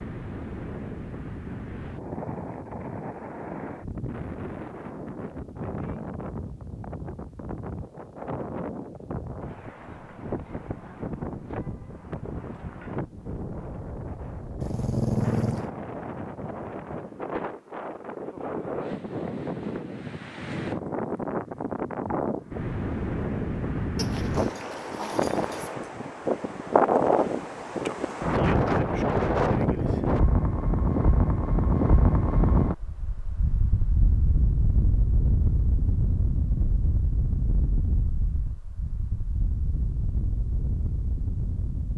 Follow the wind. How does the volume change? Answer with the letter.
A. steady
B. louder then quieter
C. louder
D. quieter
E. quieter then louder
B.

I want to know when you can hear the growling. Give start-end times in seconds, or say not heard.
14.6-15.7, 23.9-25.7.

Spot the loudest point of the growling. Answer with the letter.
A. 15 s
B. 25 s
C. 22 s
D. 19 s
A.